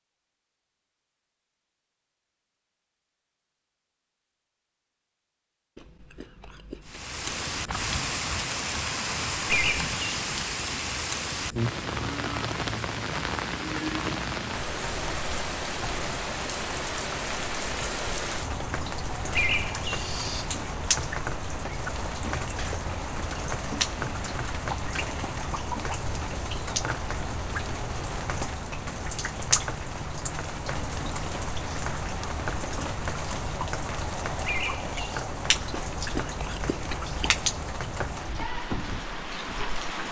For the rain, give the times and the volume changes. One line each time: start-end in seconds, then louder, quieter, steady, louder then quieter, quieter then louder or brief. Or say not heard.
6.8-40.0 steady.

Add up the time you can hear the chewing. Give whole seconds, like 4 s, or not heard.
4 s.